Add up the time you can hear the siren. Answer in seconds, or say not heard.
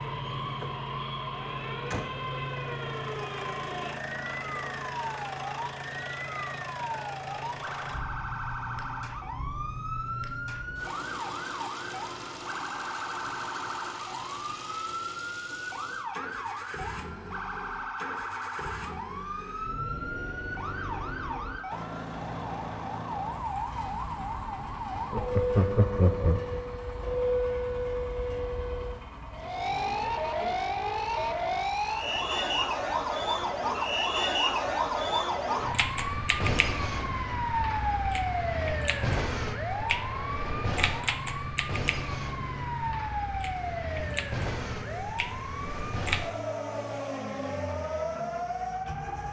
49 s.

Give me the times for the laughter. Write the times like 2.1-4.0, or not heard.
25.1-26.6.